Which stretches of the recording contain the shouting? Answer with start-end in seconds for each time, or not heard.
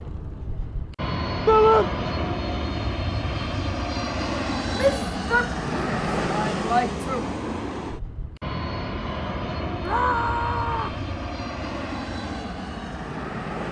1.4-1.9, 4.7-7.2, 9.8-11.0.